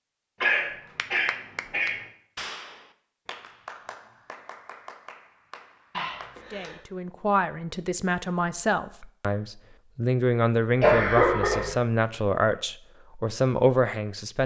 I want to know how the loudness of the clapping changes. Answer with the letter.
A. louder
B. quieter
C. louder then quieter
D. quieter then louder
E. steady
B.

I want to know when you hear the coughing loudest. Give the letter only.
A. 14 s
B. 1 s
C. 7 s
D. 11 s
D.